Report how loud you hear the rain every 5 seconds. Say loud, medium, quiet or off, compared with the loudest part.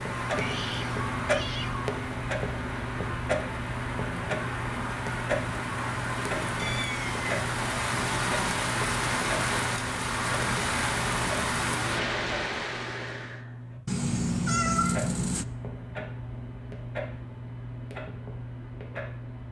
medium, loud, loud, off.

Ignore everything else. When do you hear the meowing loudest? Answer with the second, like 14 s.
15 s.